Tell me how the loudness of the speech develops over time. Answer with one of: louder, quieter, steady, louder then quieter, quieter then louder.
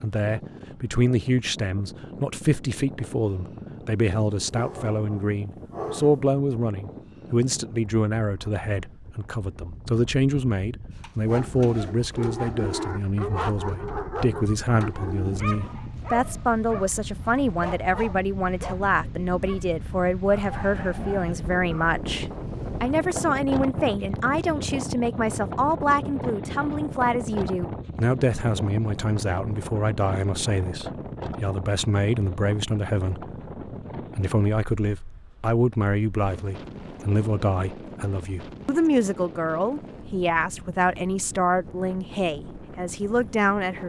steady.